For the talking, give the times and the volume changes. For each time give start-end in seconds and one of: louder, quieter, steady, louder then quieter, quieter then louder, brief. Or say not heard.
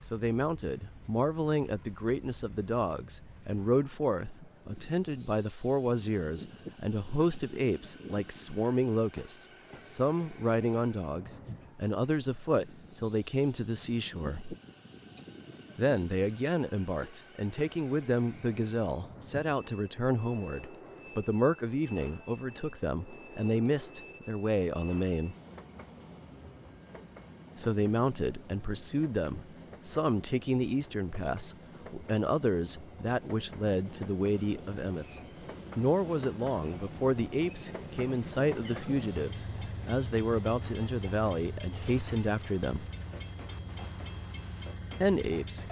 0.1-14.6 steady
15.8-25.4 steady
27.6-42.9 steady
45.0-45.6 brief.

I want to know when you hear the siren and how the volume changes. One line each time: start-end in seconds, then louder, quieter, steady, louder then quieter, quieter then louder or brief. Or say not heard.
not heard.